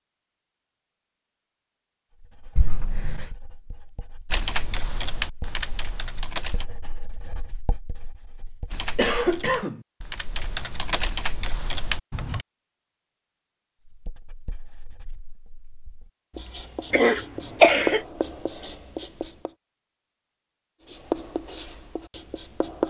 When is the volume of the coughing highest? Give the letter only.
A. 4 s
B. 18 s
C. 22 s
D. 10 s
B.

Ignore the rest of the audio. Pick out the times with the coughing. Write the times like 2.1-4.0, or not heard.
2.5-3.2, 8.9-9.8, 16.9-18.0.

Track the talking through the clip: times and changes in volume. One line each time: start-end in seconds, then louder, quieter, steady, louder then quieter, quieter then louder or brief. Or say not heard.
not heard.